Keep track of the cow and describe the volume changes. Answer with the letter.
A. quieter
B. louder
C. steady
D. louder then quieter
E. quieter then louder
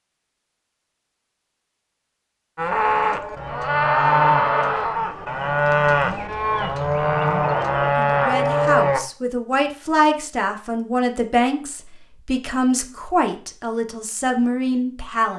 C.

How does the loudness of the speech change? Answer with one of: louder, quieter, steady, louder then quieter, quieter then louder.
steady.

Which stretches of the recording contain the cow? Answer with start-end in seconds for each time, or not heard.
2.5-9.0.